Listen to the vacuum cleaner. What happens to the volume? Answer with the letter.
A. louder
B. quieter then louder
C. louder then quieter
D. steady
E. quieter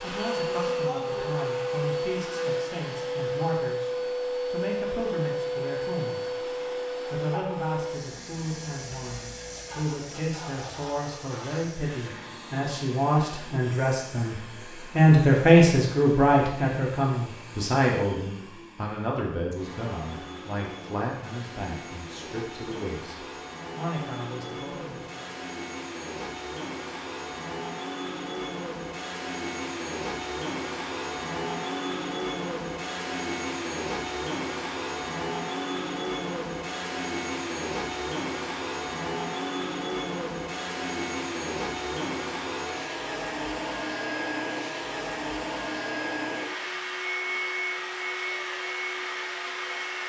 B.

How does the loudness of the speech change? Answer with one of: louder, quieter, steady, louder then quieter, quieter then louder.
louder then quieter.